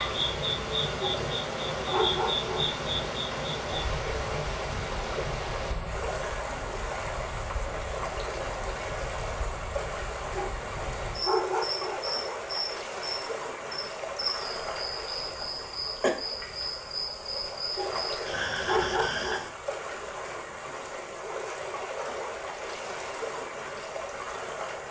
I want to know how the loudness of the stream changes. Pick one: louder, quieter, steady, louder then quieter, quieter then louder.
steady.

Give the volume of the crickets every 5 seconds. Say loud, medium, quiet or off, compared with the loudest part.
loud, medium, loud, loud, off.